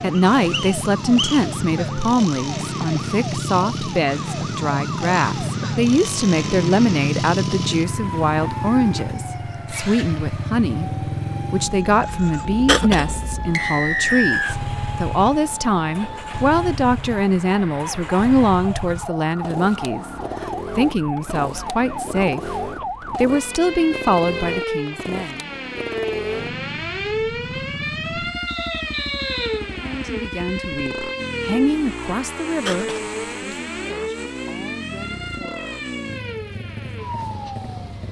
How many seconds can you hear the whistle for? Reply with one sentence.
The whistle can be heard for 4 seconds in total.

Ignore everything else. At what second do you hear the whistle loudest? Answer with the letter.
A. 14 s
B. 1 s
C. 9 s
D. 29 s
A.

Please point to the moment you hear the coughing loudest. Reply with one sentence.
The volume of the coughing peaks at 13 seconds.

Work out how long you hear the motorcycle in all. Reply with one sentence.
The motorcycle can be heard for 38 seconds in total.